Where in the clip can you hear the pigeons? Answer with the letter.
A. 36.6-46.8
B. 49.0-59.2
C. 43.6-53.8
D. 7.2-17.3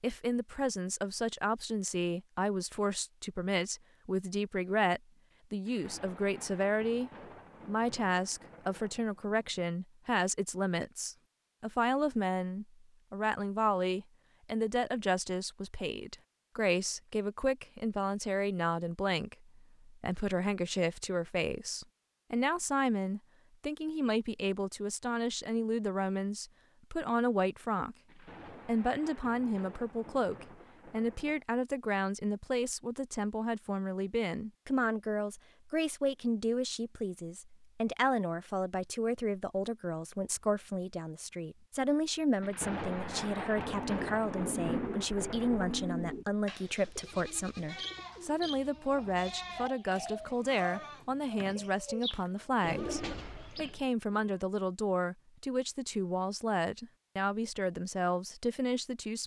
C.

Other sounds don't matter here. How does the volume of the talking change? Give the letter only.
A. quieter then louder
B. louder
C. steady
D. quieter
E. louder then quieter
C.